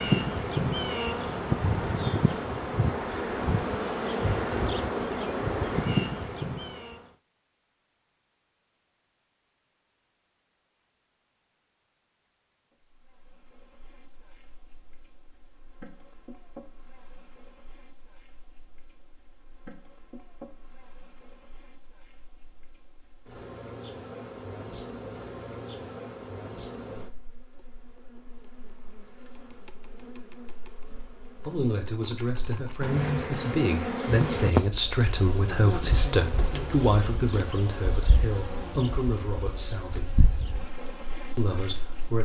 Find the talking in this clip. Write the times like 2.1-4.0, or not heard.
31.4-40.1, 41.4-42.2.